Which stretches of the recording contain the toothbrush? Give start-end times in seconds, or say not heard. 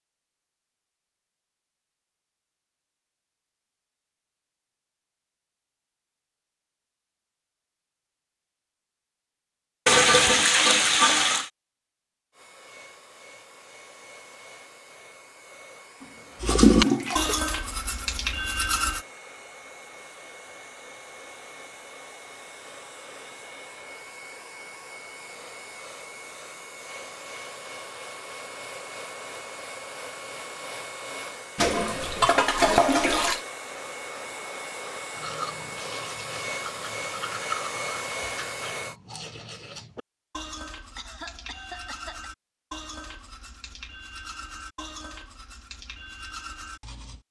16.4-19.1, 35.1-47.2.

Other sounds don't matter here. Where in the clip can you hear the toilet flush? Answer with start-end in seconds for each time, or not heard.
9.8-11.5, 16.4-17.4, 31.6-33.4.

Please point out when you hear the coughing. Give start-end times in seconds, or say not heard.
41.0-42.3.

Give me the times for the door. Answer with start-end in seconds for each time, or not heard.
not heard.